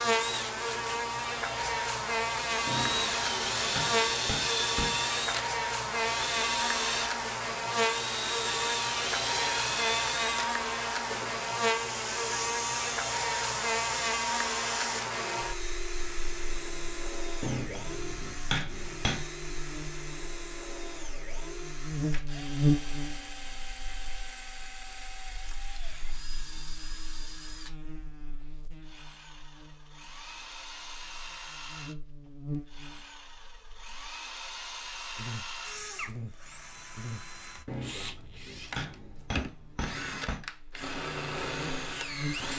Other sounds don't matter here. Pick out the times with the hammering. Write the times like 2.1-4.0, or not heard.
2.6-5.0, 17.4-19.2, 37.6-40.5.